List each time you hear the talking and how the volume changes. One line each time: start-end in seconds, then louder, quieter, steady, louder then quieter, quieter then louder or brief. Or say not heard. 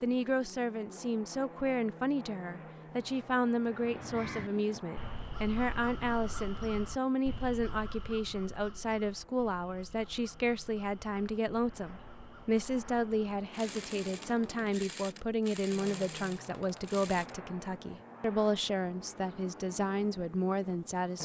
0.0-21.1 steady.